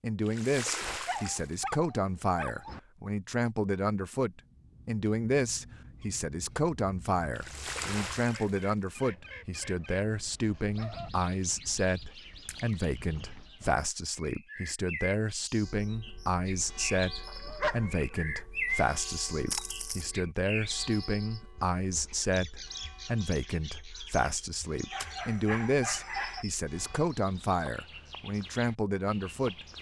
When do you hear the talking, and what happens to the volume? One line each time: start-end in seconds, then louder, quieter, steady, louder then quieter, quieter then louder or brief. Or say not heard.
0.0-29.7 steady.